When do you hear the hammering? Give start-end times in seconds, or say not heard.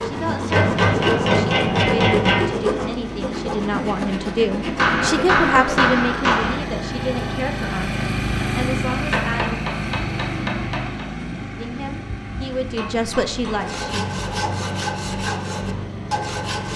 0.5-2.5, 4.8-6.5, 8.9-11.1, 12.7-13.7.